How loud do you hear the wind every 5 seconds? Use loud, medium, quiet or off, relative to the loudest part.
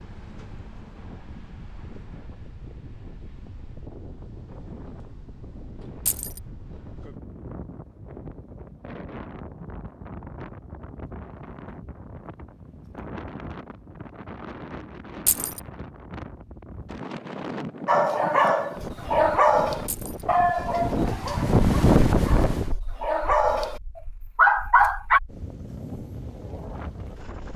quiet, quiet, quiet, medium, loud, quiet.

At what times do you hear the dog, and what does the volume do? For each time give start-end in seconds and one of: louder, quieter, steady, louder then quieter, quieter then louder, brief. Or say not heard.
17.9-25.2 quieter then louder.